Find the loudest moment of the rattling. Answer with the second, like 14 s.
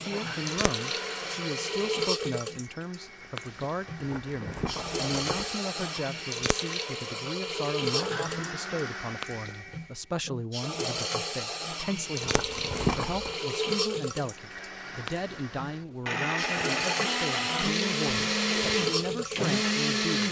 13 s.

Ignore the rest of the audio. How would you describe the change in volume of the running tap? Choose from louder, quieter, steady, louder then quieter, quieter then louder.
steady.